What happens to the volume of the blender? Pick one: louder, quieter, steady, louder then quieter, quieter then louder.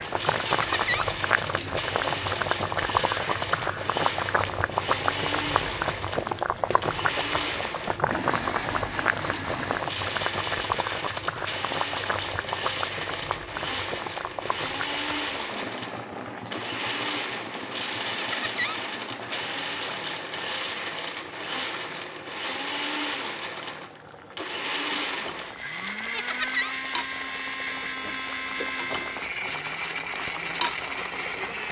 steady.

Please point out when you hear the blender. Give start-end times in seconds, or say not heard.
0.0-31.6.